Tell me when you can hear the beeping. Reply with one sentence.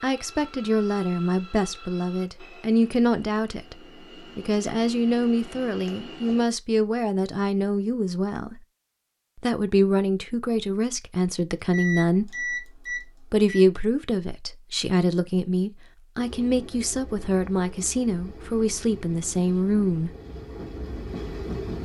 You can hear the beeping from 11.7 to 13.7 s.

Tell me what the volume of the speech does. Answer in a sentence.
The volume of the speech stays about the same.